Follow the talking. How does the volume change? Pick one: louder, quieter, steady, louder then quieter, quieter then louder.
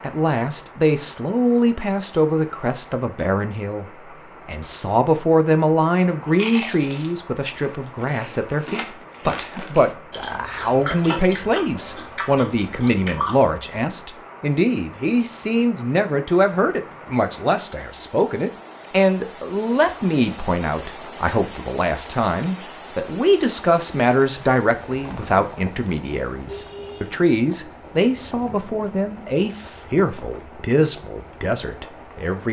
steady.